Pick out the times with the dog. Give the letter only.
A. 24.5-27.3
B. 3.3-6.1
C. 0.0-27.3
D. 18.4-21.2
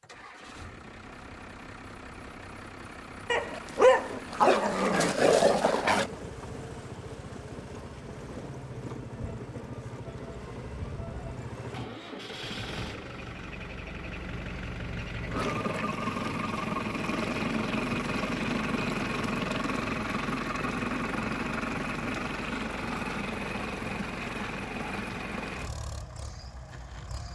B.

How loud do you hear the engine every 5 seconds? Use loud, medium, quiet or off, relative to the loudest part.
quiet, medium, medium, loud, loud, medium.